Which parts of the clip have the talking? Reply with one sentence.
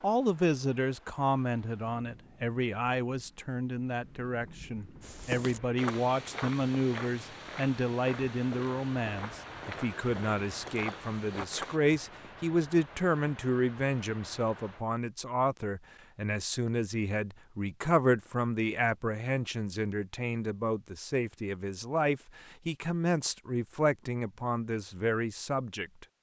You can hear the talking from 0.0 to 26.1 s.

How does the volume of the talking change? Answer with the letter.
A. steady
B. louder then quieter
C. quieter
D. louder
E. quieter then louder
A.